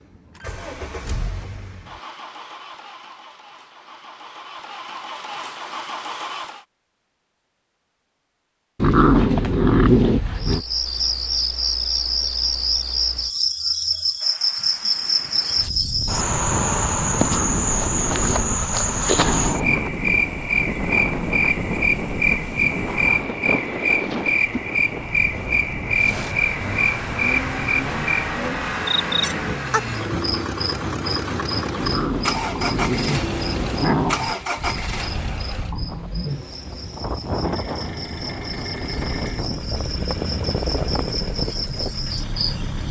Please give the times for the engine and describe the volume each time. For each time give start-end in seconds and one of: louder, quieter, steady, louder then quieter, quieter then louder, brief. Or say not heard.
0.0-6.7 quieter then louder
25.9-42.8 quieter.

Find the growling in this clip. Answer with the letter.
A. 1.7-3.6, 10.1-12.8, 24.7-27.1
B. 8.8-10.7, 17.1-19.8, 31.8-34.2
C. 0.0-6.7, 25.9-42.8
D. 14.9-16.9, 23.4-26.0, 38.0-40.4
B.